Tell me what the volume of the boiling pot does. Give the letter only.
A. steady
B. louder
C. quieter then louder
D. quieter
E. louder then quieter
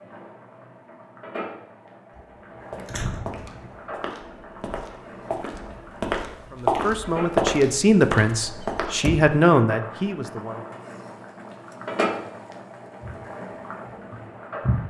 B.